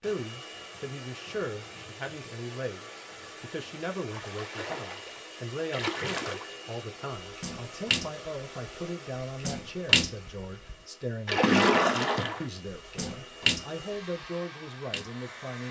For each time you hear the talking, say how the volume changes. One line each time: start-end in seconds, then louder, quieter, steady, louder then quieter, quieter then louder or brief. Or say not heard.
0.0-15.6 steady.